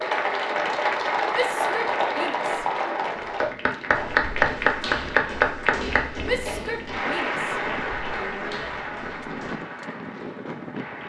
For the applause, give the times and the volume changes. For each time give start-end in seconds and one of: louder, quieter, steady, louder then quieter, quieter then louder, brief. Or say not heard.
0.0-11.0 quieter.